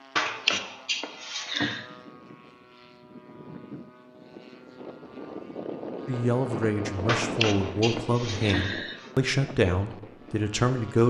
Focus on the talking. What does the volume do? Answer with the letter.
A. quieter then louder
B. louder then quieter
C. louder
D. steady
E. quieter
B.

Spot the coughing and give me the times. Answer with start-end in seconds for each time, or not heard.
0.1-1.9, 7.0-9.1.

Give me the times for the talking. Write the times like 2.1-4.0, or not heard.
6.0-11.0.